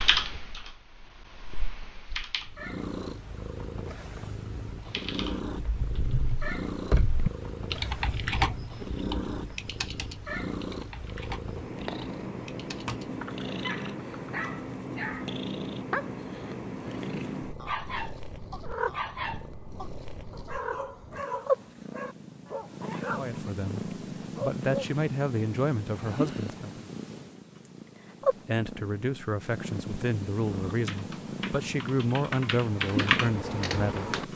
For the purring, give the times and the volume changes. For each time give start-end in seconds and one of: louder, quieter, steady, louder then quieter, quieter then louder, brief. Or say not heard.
2.4-34.3 steady.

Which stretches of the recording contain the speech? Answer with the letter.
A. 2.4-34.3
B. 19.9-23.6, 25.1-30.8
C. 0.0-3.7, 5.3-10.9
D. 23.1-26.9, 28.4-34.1
D.